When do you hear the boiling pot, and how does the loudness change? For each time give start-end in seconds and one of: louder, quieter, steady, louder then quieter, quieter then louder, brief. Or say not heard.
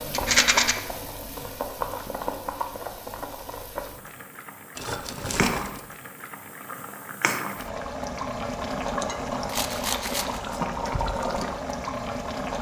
0.0-12.5 quieter then louder.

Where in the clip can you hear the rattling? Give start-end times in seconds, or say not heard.
0.1-0.8, 4.8-5.8, 9.4-10.4.